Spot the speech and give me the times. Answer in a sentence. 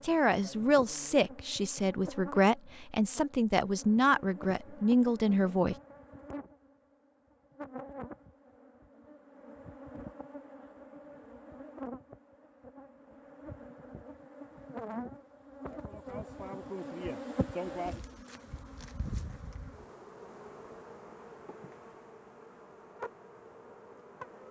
You can hear the speech from 0.0 to 5.8 s.